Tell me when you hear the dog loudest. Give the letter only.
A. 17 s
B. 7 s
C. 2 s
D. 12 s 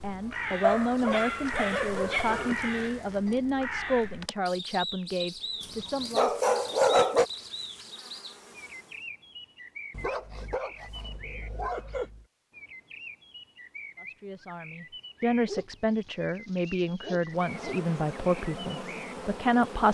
B.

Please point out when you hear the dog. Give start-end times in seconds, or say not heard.
0.6-2.5, 5.6-7.2, 9.9-12.2, 15.2-17.8.